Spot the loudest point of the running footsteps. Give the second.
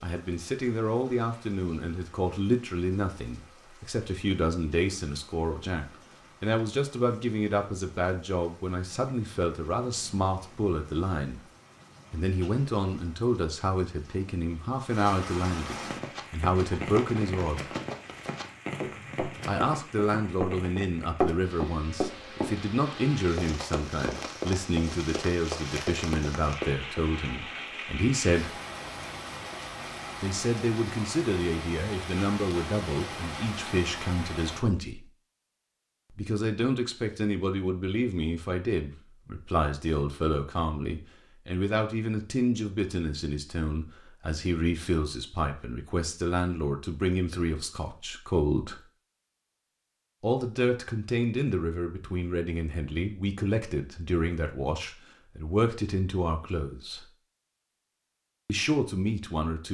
21 s.